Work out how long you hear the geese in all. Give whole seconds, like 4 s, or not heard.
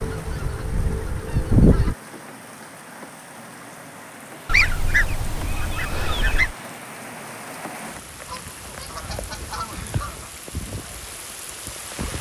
6 s.